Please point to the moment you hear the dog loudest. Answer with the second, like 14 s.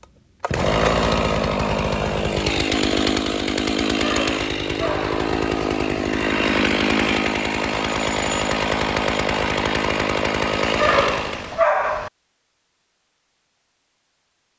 12 s.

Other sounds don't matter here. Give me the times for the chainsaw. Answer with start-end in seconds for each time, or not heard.
0.0-11.6.